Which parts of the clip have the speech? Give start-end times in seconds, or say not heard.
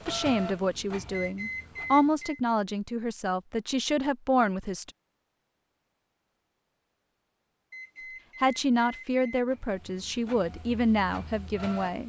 0.1-4.9, 8.4-12.0.